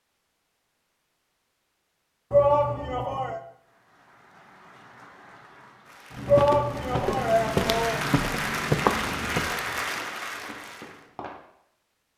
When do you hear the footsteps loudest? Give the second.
9 s.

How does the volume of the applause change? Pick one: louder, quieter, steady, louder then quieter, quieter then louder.
louder.